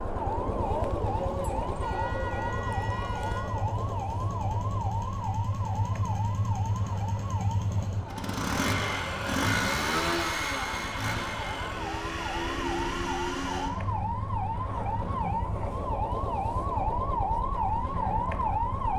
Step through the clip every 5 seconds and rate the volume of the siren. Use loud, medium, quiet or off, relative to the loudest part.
loud, medium, medium, loud.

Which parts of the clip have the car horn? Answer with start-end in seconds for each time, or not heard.
1.0-3.5.